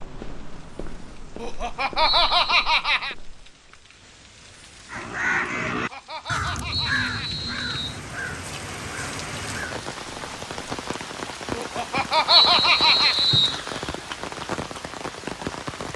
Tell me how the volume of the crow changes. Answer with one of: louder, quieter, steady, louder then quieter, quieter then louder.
quieter.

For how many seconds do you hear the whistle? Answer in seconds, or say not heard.
3 s.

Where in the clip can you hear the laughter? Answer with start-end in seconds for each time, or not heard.
1.4-3.1, 5.7-7.3, 11.6-13.2.